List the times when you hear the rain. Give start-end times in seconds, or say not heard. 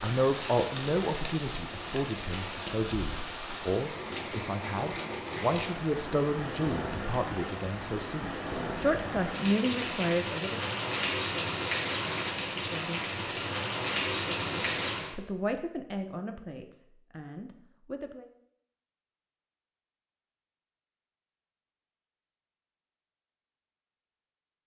0.0-15.2.